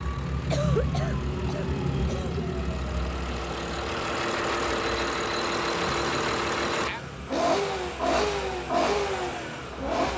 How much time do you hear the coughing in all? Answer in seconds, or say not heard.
2 s.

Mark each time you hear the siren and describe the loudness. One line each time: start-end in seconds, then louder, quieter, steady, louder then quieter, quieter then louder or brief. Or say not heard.
0.0-10.1 quieter.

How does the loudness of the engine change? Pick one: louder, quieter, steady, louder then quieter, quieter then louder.
louder.